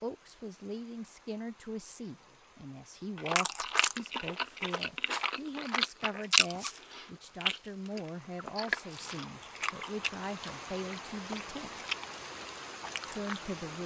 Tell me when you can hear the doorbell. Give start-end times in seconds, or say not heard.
not heard.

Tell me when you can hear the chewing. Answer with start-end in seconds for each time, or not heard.
3.1-13.3.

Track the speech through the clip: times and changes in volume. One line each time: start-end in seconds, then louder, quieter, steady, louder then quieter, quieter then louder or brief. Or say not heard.
0.0-11.7 steady
13.1-13.8 brief.